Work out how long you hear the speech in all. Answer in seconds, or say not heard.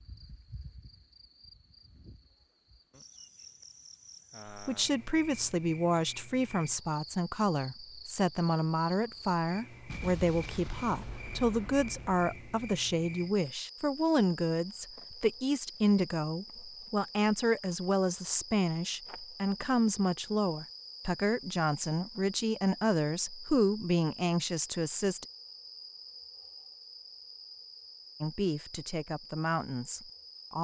23 s.